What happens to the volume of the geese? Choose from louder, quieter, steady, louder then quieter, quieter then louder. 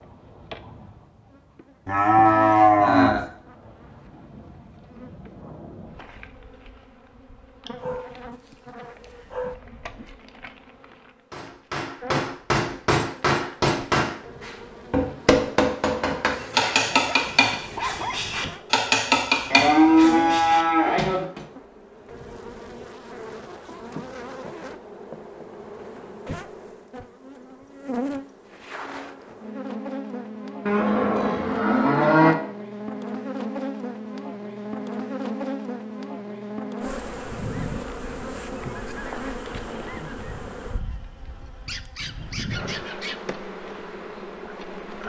quieter then louder.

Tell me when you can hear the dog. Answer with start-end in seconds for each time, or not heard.
7.8-9.6, 16.3-18.2, 41.6-43.2.